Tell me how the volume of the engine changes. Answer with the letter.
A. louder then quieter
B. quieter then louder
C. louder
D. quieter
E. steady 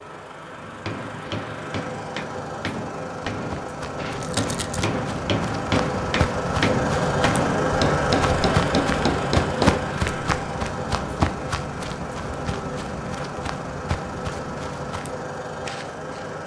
A.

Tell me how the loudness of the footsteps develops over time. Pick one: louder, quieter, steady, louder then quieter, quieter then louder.
louder then quieter.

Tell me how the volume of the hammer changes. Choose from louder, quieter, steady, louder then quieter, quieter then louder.
louder.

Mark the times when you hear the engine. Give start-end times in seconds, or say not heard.
0.0-16.4.